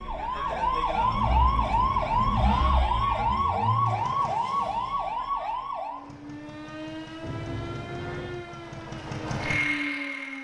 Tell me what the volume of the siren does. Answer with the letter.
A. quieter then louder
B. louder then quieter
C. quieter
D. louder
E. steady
C.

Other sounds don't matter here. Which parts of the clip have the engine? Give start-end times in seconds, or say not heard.
0.0-4.4, 6.0-10.3.